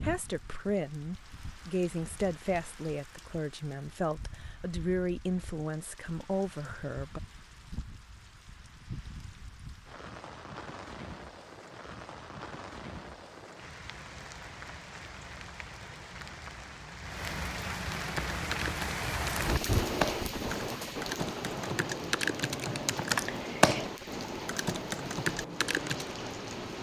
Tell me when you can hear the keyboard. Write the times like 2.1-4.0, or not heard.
18.0-26.1.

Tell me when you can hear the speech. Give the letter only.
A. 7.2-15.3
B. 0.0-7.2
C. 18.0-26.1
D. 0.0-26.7
B.